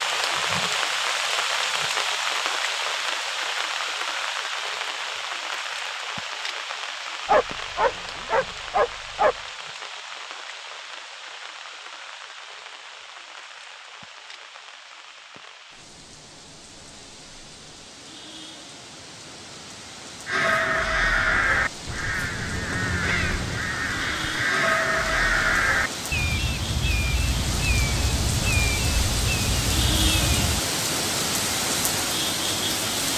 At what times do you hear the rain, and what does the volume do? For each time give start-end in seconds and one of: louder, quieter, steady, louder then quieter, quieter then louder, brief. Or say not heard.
0.0-33.1 quieter then louder.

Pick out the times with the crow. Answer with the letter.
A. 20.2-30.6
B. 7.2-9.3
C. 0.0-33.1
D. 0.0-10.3
A.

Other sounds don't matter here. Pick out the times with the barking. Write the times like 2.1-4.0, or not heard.
7.2-9.3.